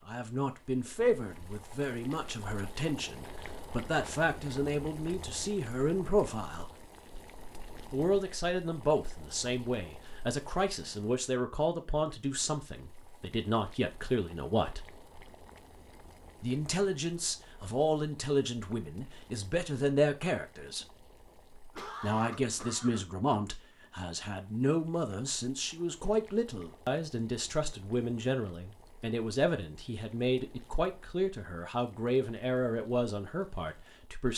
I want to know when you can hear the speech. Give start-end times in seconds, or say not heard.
0.1-6.7, 7.9-14.8, 16.4-20.9, 22.0-34.3.